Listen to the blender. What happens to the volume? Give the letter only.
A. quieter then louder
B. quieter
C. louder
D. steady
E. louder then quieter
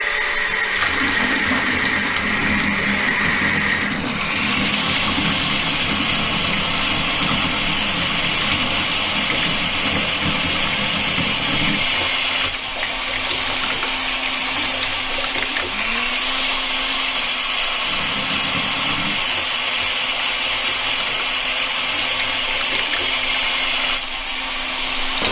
D.